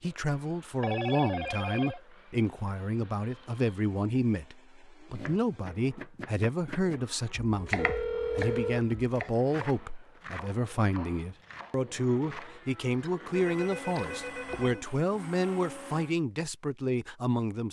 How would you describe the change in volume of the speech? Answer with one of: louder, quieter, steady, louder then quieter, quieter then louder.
steady.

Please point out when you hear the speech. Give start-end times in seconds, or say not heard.
0.0-17.6.